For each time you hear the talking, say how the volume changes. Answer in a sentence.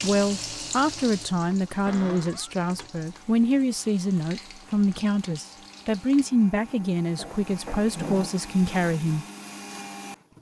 You can hear the talking from 0.0 to 9.2 s, at a steady volume.